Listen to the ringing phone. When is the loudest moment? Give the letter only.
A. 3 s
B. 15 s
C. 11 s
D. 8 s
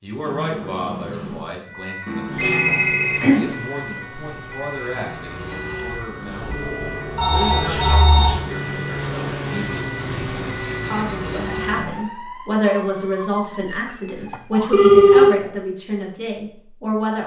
B.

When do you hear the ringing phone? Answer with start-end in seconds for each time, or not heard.
2.0-3.4, 7.2-8.3, 14.7-15.3.